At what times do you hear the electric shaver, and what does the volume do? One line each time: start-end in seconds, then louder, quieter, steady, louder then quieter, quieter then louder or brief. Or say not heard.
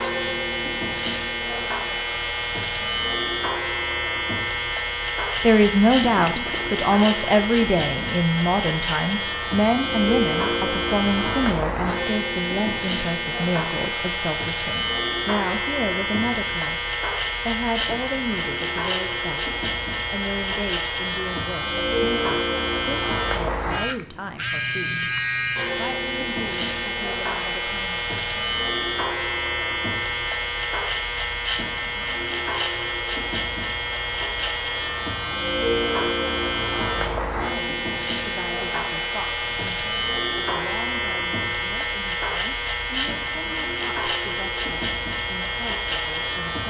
0.0-46.6 steady.